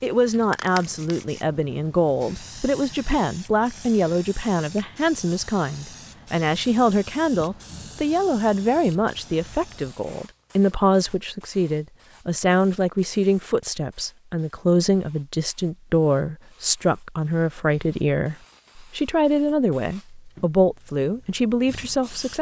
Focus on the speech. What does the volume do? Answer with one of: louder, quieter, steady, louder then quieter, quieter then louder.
steady.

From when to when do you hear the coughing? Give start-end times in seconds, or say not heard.
not heard.